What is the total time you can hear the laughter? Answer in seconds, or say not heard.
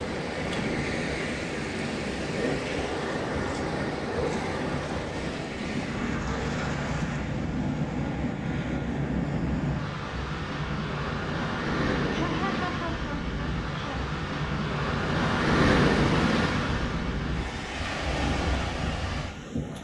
2 s.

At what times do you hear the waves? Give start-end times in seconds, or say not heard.
0.0-19.7.